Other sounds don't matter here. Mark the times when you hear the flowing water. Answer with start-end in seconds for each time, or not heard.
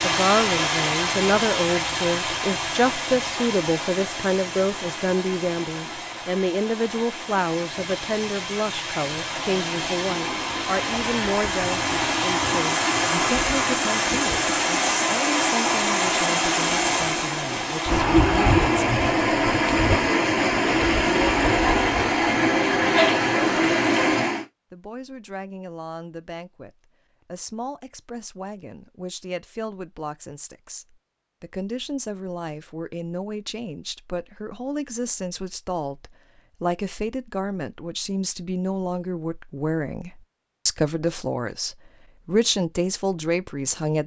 0.0-24.4.